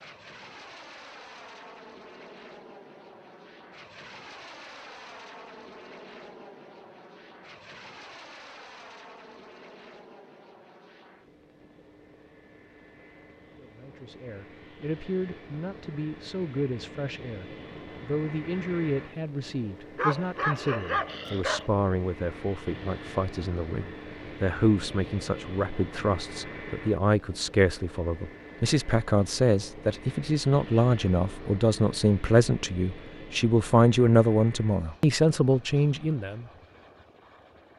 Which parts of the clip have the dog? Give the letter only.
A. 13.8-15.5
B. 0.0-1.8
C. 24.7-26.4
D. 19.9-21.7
D.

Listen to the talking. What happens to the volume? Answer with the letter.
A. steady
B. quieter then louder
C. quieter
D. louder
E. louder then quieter
D.